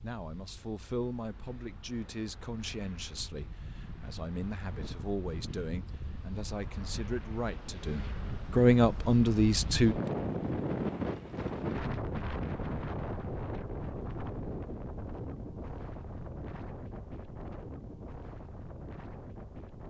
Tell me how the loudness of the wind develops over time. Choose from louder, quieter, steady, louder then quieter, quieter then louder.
louder then quieter.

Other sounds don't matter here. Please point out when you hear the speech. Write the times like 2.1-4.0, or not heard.
0.0-9.9.